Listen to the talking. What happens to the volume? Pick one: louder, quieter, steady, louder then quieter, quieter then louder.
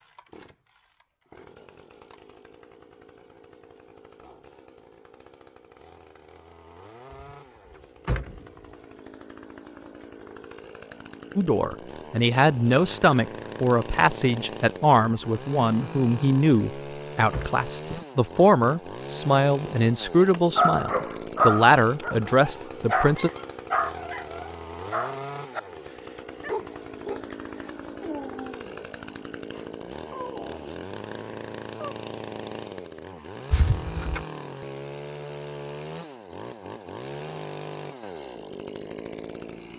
steady.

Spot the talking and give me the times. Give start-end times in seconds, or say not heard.
11.3-23.3.